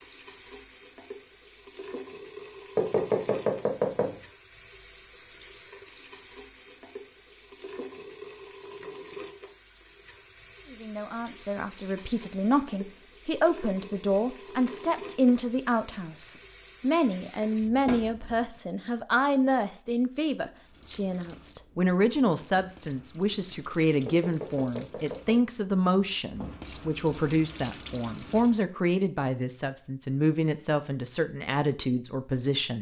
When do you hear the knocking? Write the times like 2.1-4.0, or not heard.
2.8-4.2, 17.9-18.4, 24.1-25.4.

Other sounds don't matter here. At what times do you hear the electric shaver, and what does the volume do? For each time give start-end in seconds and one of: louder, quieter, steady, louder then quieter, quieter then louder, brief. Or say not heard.
not heard.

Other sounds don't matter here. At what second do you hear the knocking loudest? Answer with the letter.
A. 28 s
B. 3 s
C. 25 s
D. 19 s
B.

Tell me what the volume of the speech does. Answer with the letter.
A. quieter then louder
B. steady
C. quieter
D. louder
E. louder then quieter
B.